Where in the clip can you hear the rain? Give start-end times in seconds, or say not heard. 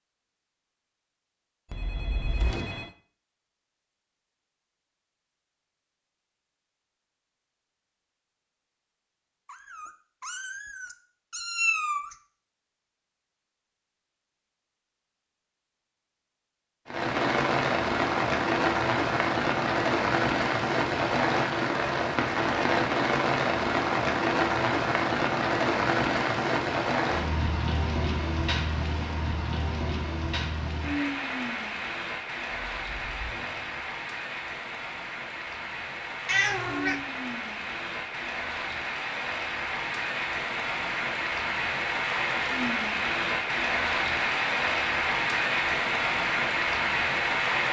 16.9-47.6.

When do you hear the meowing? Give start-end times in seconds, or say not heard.
9.4-12.2, 36.2-37.0.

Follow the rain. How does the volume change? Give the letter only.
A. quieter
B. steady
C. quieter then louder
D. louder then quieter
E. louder
C.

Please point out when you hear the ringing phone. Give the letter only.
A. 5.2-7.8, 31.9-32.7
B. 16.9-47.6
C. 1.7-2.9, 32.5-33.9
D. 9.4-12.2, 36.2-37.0
C.